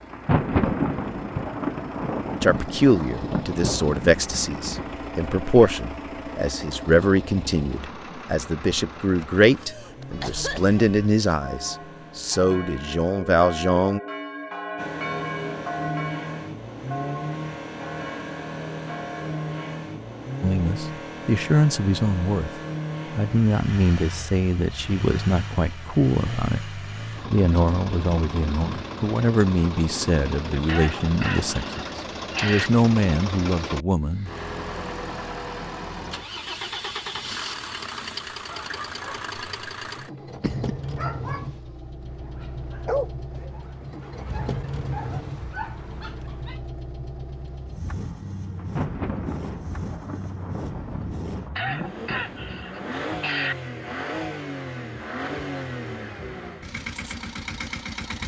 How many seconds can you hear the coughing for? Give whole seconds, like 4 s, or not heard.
6 s.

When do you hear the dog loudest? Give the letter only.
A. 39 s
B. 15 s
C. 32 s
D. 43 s
D.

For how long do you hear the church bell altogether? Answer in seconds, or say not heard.
10 s.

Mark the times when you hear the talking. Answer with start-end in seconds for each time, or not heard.
2.4-14.0, 20.4-22.5, 23.1-34.3.